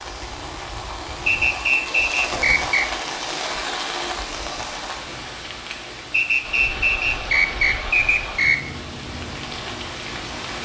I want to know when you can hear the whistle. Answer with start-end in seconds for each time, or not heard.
1.2-2.9, 6.1-8.6.